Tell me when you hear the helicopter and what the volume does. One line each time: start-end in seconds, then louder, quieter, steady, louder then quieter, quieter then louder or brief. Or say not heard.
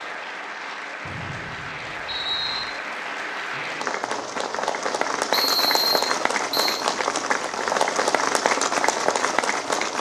not heard.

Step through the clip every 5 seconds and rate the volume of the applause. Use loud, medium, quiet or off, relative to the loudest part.
medium, loud.